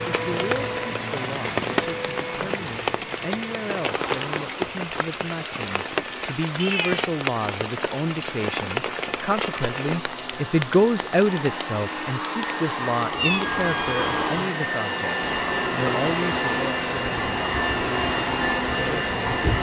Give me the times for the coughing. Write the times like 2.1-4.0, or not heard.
not heard.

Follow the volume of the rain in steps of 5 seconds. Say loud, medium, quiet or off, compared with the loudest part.
loud, loud, medium, medium.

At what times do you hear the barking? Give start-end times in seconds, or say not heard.
not heard.